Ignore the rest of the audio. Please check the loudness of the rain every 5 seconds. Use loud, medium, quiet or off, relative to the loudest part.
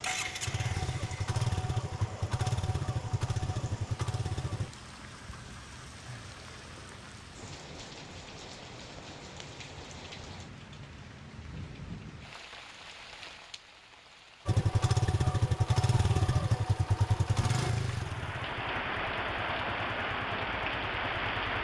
quiet, quiet, quiet, loud, loud.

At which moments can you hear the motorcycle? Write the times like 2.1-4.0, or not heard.
0.0-4.7, 14.4-21.5.